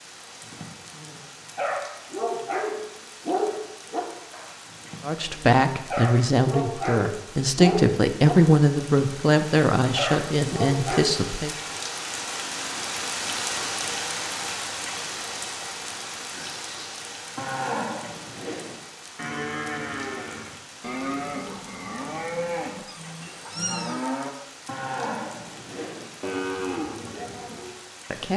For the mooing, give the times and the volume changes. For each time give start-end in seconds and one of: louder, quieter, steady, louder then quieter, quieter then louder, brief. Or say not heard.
16.3-27.8 steady.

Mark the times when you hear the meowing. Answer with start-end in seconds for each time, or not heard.
22.9-24.1.